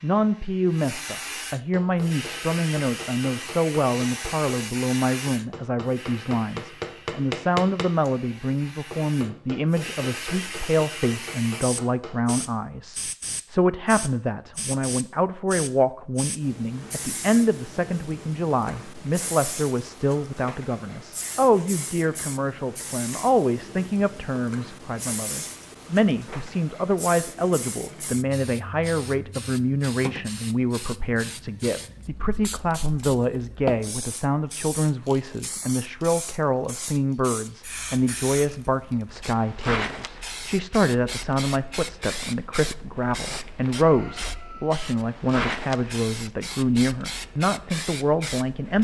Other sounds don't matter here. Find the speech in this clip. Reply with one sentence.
The speech can be heard from 0.0 to 48.7 s.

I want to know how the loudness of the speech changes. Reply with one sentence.
The loudness of the speech stays about the same.